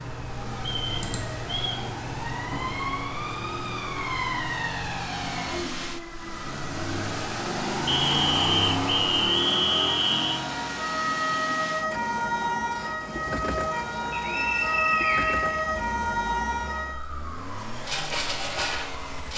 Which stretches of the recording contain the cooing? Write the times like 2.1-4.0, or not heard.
not heard.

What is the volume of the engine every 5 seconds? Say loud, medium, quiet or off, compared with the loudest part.
medium, loud, medium, medium.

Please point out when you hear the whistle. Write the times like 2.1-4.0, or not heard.
0.6-1.9, 7.8-10.4, 14.1-15.6.